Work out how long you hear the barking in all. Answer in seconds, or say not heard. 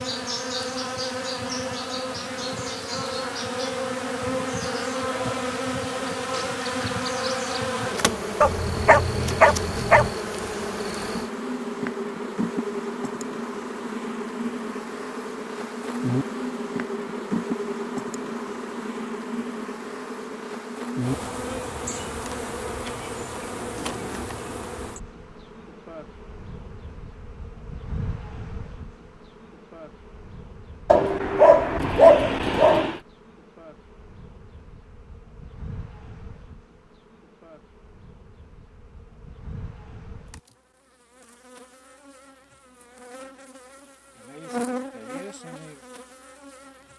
4 s.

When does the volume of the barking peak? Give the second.
32 s.